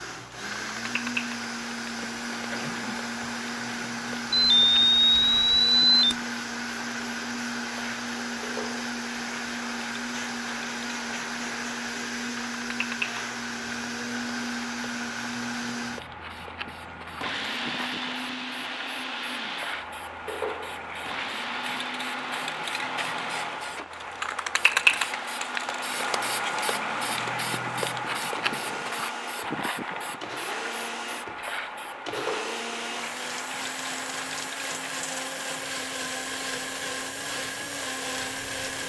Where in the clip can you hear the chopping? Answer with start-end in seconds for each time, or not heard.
not heard.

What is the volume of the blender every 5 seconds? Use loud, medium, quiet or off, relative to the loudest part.
loud, loud, loud, loud, medium, medium, loud, loud.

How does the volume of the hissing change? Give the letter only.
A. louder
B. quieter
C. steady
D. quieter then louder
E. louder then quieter
E.